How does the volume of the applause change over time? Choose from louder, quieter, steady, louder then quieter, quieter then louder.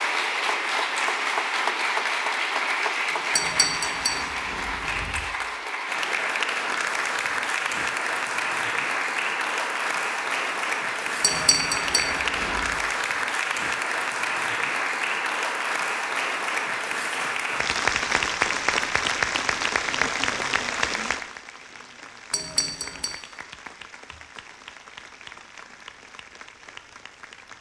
quieter.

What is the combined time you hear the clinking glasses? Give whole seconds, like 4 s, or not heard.
4 s.